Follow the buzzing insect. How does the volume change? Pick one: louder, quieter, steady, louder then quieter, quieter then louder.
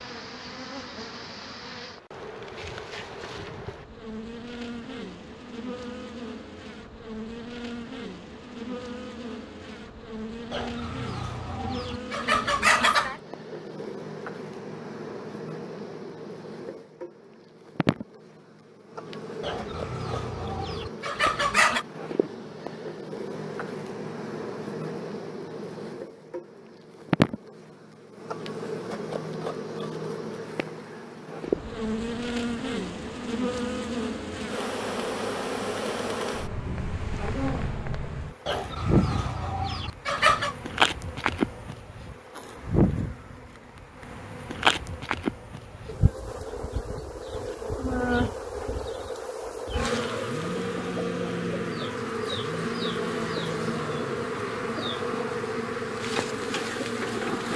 louder.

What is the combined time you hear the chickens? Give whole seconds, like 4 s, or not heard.
7 s.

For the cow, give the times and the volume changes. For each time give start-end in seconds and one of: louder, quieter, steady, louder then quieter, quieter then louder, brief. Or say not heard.
not heard.